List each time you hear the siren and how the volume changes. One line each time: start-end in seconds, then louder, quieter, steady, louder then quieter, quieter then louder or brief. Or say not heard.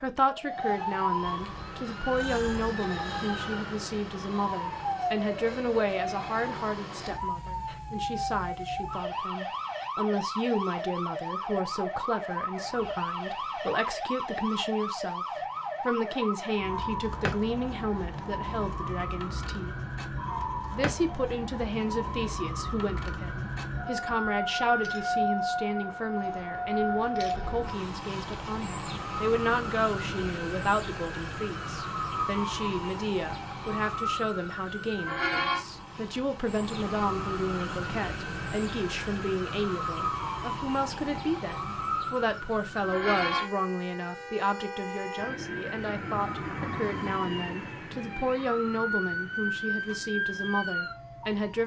0.0-51.6 steady.